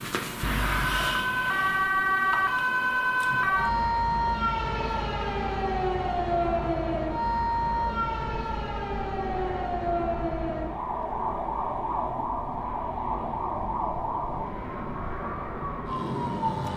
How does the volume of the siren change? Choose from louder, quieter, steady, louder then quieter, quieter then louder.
quieter.